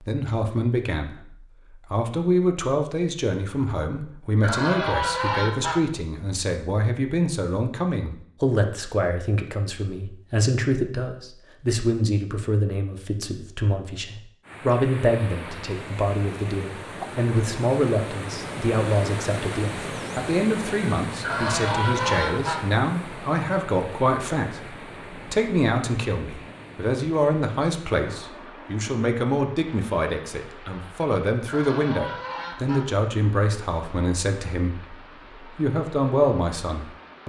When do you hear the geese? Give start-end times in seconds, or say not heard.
4.3-5.8, 21.1-22.6, 31.4-32.9.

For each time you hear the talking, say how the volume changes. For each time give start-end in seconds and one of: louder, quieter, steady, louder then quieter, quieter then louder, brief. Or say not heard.
0.0-37.2 steady.